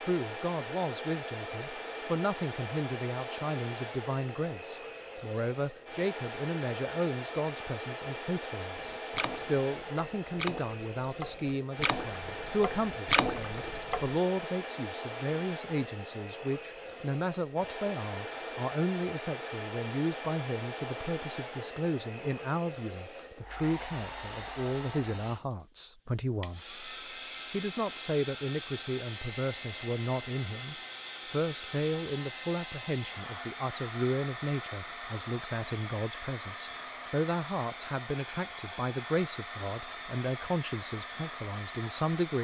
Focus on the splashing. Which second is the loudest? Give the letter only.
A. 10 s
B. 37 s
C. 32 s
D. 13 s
D.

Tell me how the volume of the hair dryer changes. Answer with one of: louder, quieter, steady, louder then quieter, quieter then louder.
steady.